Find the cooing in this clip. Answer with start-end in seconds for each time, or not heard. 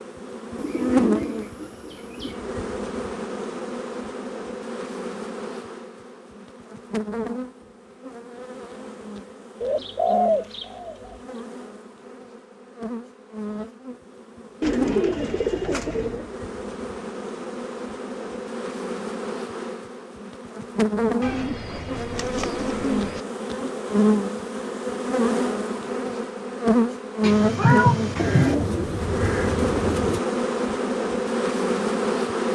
0.6-2.4, 9.6-11.2, 14.6-16.3, 21.2-23.2, 28.1-30.2.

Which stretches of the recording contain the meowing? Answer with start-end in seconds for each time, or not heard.
27.2-28.6.